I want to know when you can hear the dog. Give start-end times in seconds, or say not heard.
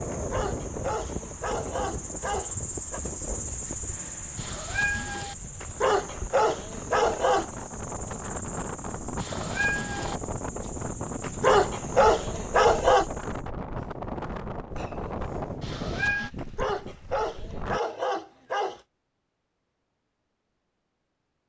0.1-3.0, 5.6-7.5, 11.2-13.1, 16.4-18.8.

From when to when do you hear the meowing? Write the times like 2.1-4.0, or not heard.
4.3-5.3, 9.2-10.2, 15.6-16.3.